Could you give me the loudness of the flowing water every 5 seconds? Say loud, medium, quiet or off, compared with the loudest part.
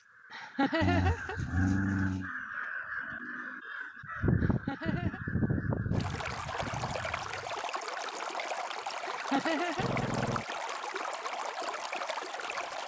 off, loud, loud.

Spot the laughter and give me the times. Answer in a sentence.
You can hear the laughter from 0.3 to 1.4 s, from 4.4 to 5.2 s and from 9.1 to 10.1 s.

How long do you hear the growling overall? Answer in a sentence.
The growling can be heard for 2 seconds in total.